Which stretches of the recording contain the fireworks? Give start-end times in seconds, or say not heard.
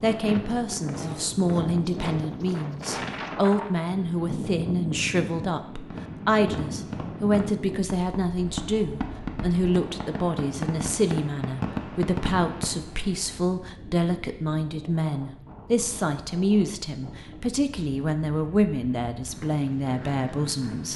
5.8-12.8.